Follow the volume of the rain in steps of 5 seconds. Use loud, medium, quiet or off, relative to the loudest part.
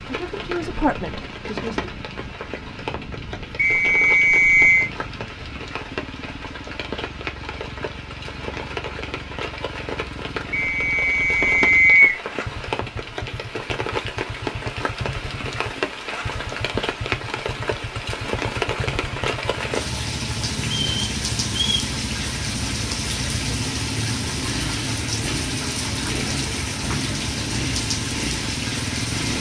medium, medium, loud, loud, loud, loud.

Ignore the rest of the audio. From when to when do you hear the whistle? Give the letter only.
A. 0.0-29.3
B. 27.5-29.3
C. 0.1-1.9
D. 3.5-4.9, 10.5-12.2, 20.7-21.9
D.